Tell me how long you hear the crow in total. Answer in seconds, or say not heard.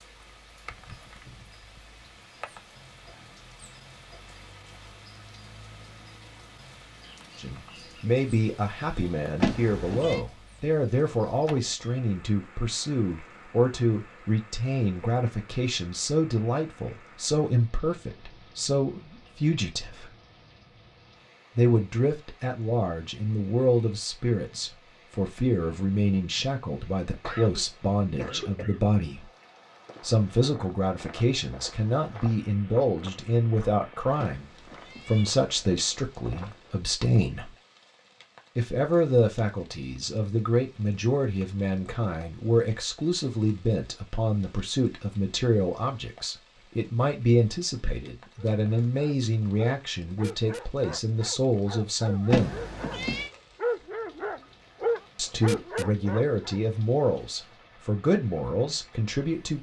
not heard.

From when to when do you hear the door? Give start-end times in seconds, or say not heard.
not heard.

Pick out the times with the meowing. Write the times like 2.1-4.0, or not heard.
9.4-10.2, 34.1-35.8, 52.3-53.3.